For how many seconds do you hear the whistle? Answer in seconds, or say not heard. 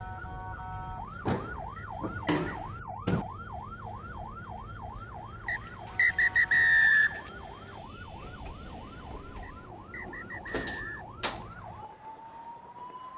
4 s.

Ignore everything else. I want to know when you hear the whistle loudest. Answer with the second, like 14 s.
7 s.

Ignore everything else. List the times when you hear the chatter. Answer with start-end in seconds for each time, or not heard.
not heard.